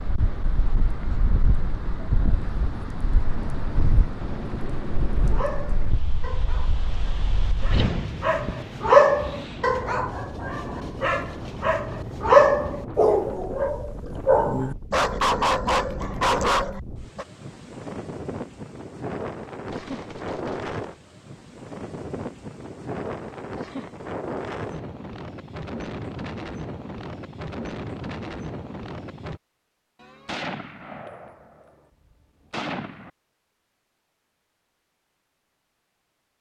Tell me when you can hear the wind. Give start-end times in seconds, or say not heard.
0.0-29.4.